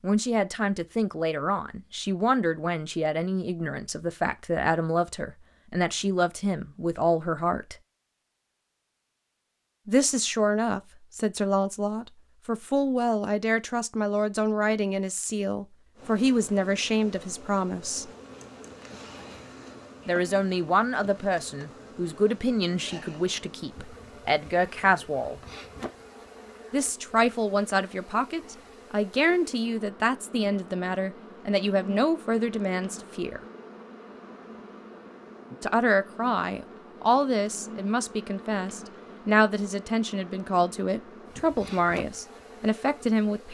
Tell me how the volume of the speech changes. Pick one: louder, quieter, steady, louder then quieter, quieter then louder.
steady.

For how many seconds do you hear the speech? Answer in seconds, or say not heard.
36 s.